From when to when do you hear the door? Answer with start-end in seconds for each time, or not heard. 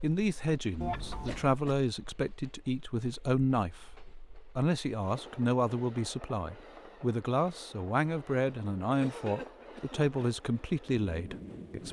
not heard.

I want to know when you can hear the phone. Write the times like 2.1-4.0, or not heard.
0.8-1.5.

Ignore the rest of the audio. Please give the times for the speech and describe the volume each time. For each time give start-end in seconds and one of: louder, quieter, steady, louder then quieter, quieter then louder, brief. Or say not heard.
0.0-11.8 steady.